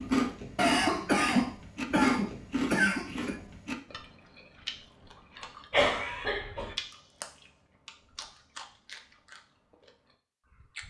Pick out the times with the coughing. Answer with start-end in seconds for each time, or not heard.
0.6-3.4, 5.7-6.8.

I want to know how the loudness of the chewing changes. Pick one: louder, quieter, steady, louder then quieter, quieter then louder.
quieter.